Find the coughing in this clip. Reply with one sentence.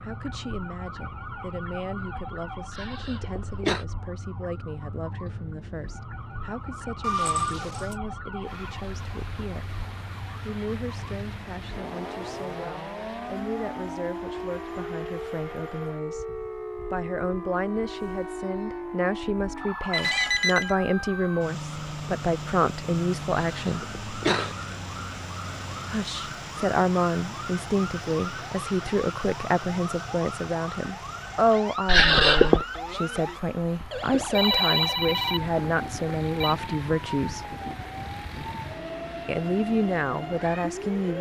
You can hear the coughing from 2.7 to 3.9 s, from 23.5 to 24.6 s and from 31.9 to 32.6 s.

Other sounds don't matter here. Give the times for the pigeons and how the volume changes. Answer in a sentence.
The pigeons can't be heard in this clip.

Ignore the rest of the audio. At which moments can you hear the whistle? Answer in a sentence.
You can't hear the whistle here.